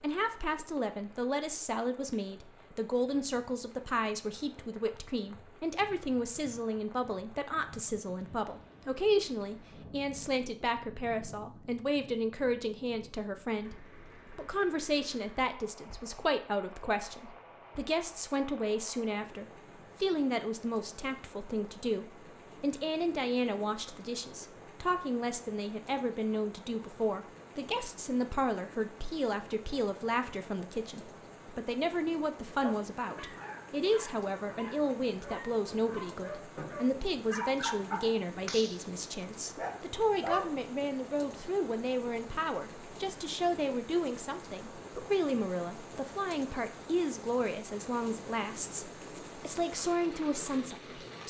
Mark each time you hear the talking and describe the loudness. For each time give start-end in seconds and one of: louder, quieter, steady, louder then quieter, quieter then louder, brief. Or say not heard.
0.0-51.2 steady.